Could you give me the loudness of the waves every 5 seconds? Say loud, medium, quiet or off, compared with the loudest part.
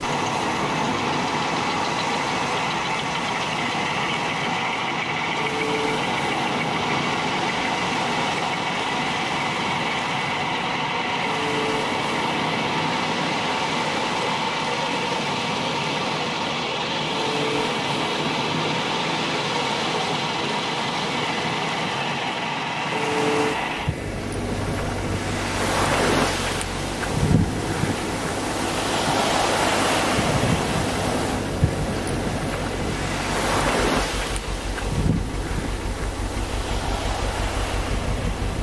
medium, medium, medium, medium, medium, loud, loud, medium.